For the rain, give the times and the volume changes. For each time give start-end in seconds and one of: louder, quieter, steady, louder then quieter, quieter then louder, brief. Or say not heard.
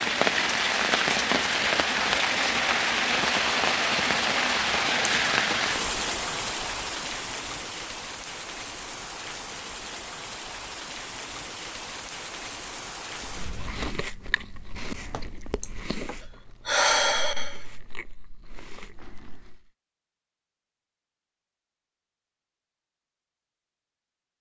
0.0-13.9 quieter.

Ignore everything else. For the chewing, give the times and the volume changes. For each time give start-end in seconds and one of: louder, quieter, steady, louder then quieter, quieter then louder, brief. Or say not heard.
13.2-19.6 quieter.